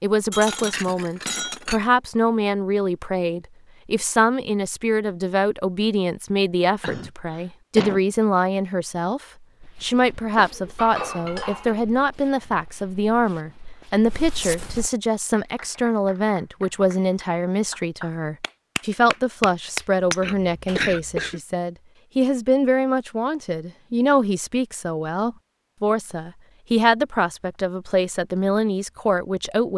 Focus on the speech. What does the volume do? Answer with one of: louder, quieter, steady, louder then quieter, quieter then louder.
steady.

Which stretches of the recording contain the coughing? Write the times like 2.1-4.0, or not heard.
6.8-8.0, 20.2-21.4.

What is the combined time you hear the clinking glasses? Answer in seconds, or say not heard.
3 s.